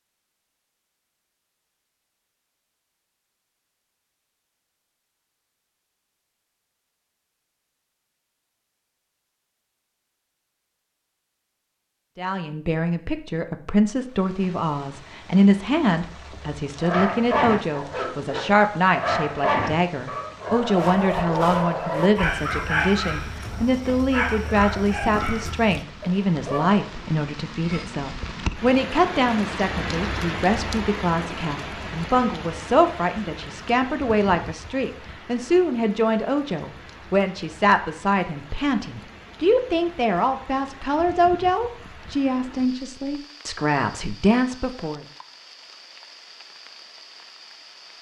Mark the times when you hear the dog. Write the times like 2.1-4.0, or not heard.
16.8-26.8.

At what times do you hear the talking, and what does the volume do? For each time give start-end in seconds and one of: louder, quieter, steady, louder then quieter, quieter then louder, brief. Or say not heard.
12.2-45.0 steady.